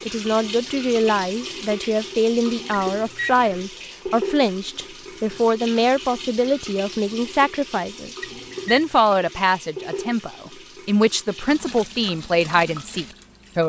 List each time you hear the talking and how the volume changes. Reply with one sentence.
You can hear the talking from 0.0 to 13.6 s, at a steady volume.